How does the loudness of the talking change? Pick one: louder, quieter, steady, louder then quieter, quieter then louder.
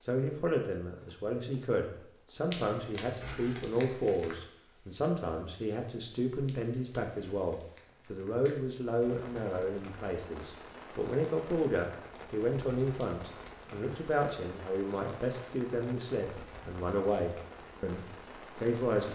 steady.